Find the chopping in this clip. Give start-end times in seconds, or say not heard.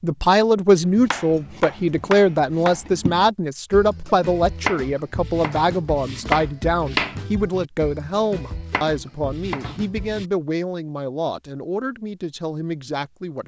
0.8-10.2.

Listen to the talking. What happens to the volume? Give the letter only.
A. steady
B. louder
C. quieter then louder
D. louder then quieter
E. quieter
E.